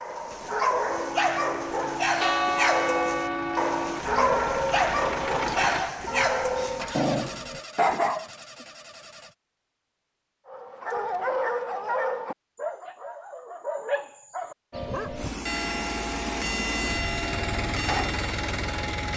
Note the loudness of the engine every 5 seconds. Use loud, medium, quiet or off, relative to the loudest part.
medium, loud, off, loud.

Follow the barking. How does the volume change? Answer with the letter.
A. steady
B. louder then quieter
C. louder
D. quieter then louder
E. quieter
E.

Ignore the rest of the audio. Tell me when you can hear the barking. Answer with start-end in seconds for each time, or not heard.
0.0-8.2, 10.4-15.1.